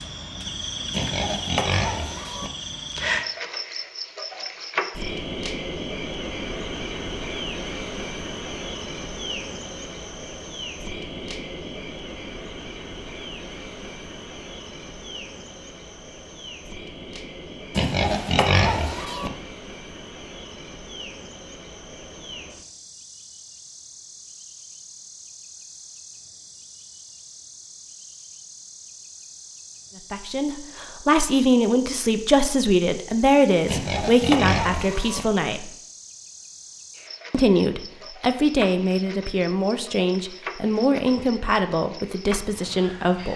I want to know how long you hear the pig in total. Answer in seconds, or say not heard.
5 s.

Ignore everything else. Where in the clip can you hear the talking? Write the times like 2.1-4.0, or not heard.
30.1-35.7, 37.3-43.3.